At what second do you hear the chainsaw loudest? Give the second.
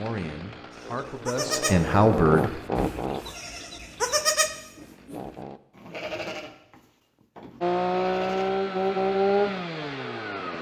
9 s.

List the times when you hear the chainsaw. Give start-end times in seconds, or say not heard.
0.0-5.6, 7.6-10.5.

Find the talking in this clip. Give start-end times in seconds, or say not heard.
0.0-2.6.